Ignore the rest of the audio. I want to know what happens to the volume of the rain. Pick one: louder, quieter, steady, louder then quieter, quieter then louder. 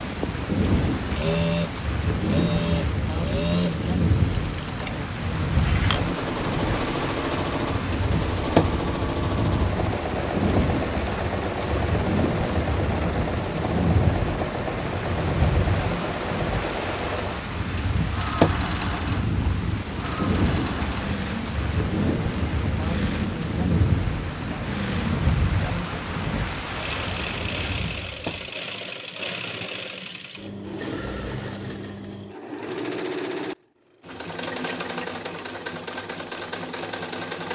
steady.